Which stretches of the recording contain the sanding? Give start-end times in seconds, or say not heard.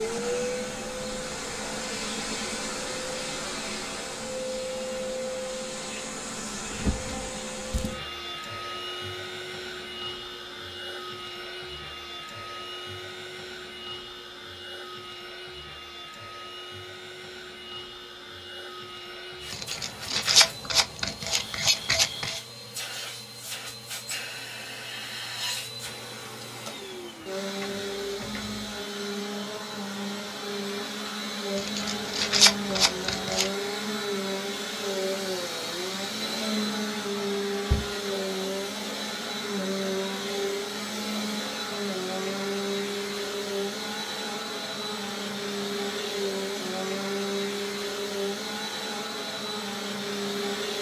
19.5-22.4, 31.6-33.5.